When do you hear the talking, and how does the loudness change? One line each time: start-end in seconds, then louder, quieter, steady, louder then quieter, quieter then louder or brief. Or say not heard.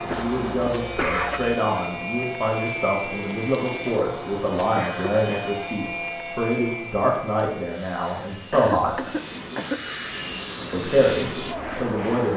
0.0-9.0 steady
10.7-12.3 brief.